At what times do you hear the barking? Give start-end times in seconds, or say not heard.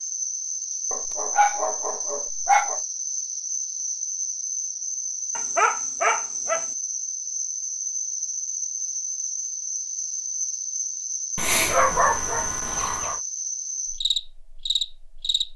0.9-2.8, 5.3-6.7, 11.3-13.2.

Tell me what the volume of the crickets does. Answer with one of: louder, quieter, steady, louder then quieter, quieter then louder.
steady.